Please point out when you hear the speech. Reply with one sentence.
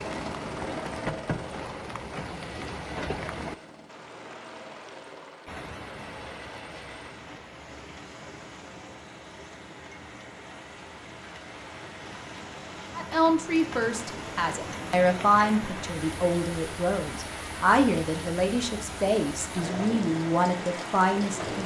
The speech can be heard from 12.9 to 21.6 s.